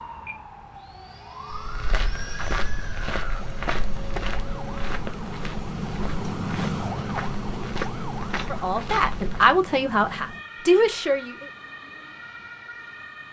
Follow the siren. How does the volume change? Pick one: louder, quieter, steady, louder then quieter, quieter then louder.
louder then quieter.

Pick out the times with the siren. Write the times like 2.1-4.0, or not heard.
0.0-13.2.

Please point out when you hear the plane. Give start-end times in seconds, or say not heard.
0.0-5.0.